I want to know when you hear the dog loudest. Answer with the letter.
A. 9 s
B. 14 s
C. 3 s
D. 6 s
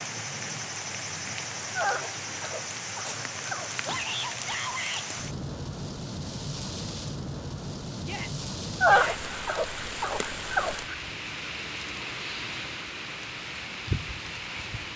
A.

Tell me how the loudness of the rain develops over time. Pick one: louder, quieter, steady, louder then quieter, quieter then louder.
steady.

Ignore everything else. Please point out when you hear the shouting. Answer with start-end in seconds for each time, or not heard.
3.9-5.0, 8.0-9.2.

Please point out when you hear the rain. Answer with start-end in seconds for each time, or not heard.
0.0-14.9.